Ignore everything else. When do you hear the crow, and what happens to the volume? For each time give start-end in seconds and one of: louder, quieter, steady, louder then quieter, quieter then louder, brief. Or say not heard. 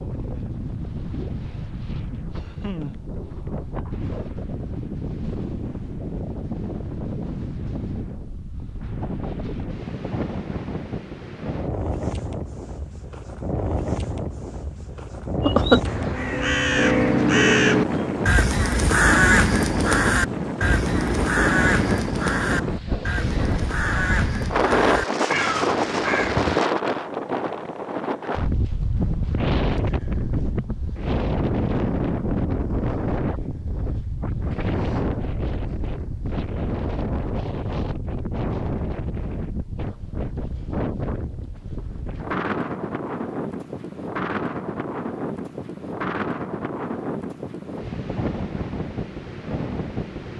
15.4-26.6 quieter.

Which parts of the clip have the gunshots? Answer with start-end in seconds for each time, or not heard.
not heard.